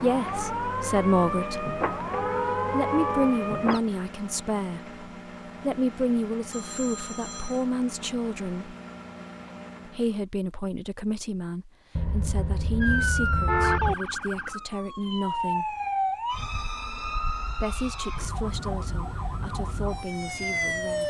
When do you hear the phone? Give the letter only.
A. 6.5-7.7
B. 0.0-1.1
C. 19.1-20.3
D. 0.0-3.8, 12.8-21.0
A.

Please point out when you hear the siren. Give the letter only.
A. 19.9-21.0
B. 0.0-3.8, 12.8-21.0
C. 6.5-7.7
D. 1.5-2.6
B.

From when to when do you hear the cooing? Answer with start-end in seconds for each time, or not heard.
not heard.